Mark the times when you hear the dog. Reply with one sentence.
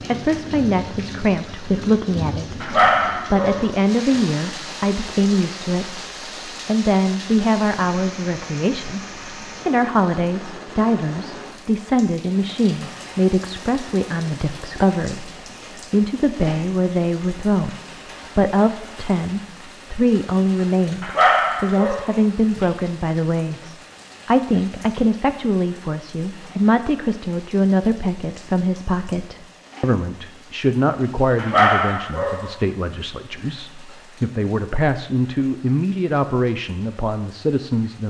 The dog can be heard from 2.6 to 4.2 s, from 21.0 to 22.6 s and from 31.4 to 33.0 s.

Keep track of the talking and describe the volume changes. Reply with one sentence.
The volume of the talking stays about the same.